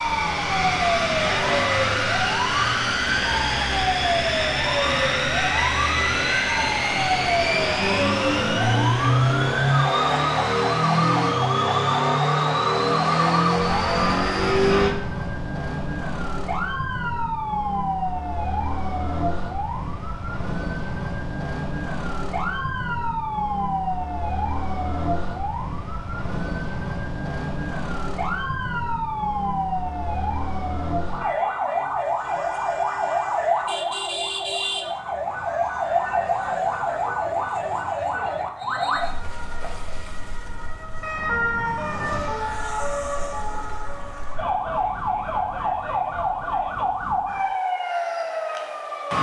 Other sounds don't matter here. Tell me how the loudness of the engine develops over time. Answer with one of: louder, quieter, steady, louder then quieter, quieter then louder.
steady.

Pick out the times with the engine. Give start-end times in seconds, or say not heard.
0.0-14.9.